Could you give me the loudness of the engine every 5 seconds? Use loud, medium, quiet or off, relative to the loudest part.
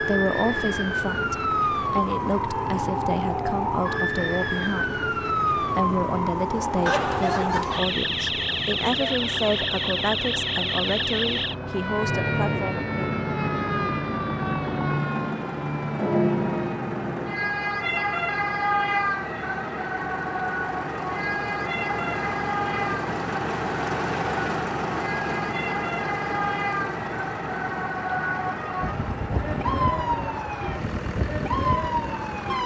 medium, medium, medium, medium, loud, loud, medium.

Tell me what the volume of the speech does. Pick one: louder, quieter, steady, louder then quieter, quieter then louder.
steady.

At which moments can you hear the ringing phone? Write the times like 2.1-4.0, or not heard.
6.8-7.9.